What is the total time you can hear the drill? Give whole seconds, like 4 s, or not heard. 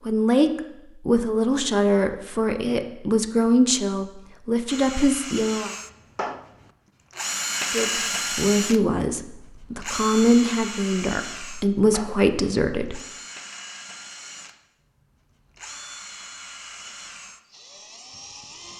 14 s.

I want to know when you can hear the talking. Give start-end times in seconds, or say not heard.
0.1-5.7, 7.7-13.0.